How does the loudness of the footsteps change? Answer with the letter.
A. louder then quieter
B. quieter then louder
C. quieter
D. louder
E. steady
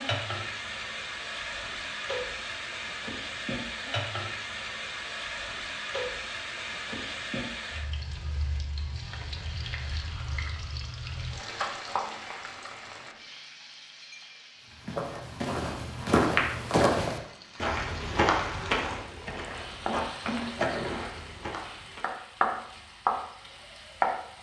C.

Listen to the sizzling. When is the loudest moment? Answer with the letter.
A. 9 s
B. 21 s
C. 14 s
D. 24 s
D.